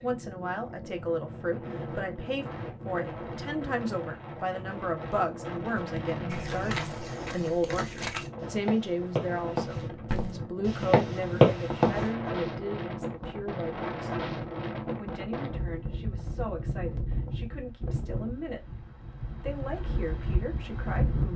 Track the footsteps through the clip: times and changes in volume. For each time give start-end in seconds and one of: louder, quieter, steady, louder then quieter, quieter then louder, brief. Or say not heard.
5.8-12.1 louder.